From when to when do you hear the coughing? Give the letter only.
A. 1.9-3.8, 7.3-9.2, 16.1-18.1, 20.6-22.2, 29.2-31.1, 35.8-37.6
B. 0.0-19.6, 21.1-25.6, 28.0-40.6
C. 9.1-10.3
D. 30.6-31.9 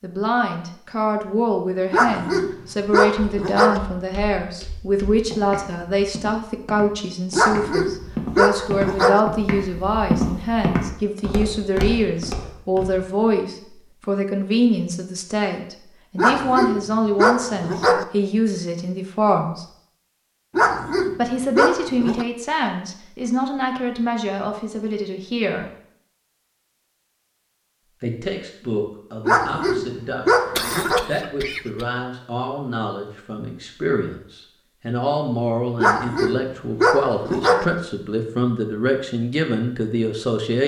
D.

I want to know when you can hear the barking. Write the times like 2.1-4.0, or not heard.
1.9-3.8, 7.3-9.2, 16.1-18.1, 20.6-22.2, 29.2-31.1, 35.8-37.6.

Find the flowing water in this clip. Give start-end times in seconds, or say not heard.
not heard.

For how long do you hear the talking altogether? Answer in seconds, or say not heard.
37 s.